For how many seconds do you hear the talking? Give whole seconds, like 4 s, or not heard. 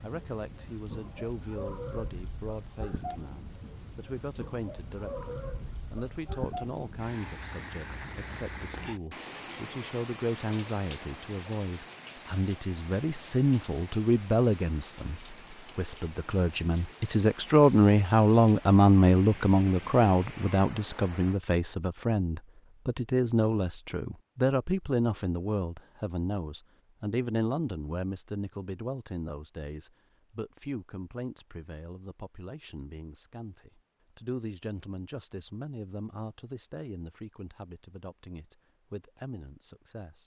40 s.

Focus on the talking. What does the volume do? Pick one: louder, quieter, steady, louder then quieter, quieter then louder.
louder then quieter.